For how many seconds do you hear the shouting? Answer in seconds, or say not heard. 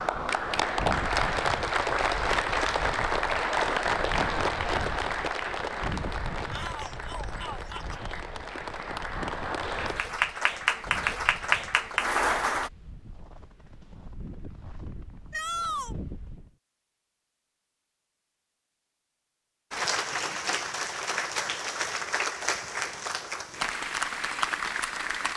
2 s.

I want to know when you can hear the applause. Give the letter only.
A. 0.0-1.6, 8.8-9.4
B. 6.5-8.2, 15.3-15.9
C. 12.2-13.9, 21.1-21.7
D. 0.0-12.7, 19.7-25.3
D.